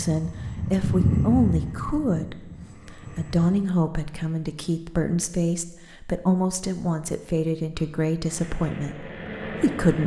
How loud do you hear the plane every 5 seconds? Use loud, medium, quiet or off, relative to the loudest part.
loud, medium.